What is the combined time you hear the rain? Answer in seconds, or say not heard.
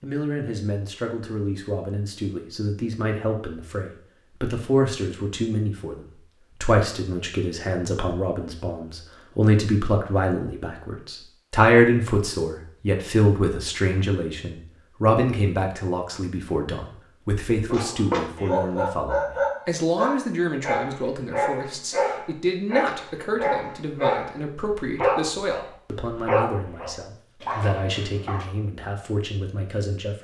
not heard.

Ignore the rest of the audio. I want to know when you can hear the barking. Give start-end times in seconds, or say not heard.
17.6-28.4.